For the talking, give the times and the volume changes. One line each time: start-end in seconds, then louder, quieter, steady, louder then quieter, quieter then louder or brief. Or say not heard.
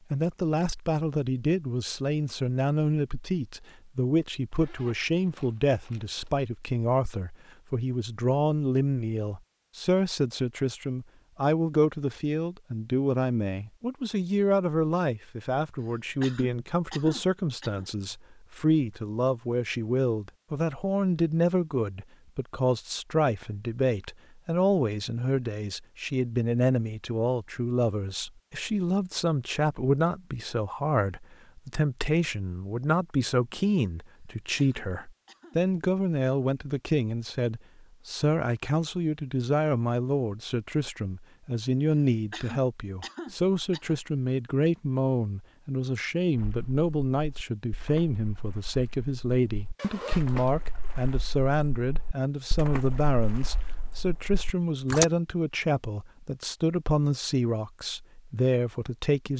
0.1-59.3 steady.